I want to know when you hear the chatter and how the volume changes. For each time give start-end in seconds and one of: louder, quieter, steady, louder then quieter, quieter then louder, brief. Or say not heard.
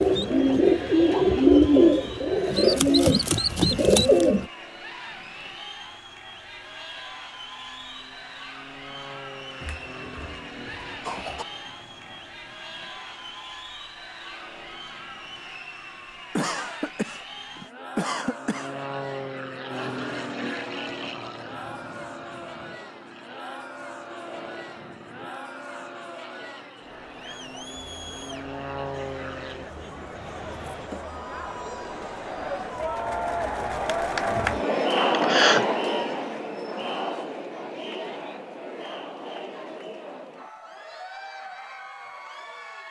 0.0-42.8 louder.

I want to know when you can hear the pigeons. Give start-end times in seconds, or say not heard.
0.0-4.5.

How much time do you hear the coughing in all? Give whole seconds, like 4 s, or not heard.
5 s.